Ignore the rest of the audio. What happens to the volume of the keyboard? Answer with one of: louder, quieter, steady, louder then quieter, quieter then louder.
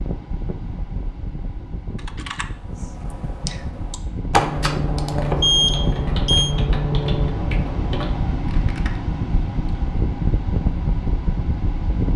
louder then quieter.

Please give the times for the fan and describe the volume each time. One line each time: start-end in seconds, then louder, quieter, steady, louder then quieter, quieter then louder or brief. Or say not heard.
0.0-12.1 louder.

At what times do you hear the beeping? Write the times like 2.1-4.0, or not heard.
5.4-6.5.